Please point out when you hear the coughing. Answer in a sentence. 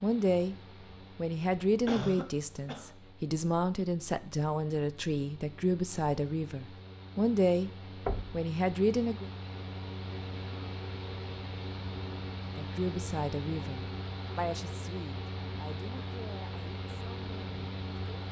You can hear the coughing from 1.9 to 2.9 s.